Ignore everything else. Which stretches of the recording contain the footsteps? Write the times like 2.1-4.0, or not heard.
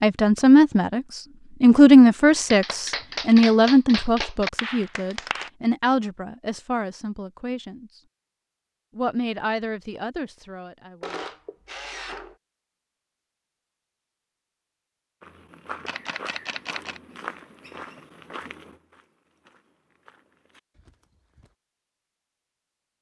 15.2-21.6.